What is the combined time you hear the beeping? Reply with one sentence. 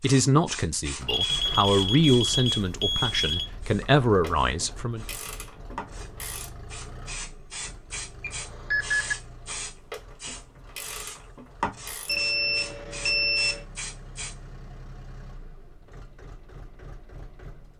You can hear the beeping for 5 seconds altogether.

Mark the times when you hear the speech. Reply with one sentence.
You can hear the speech from 0.0 to 5.0 s.